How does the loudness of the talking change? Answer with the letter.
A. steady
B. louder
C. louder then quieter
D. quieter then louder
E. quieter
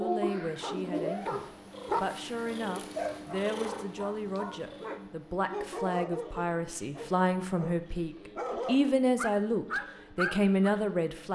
B.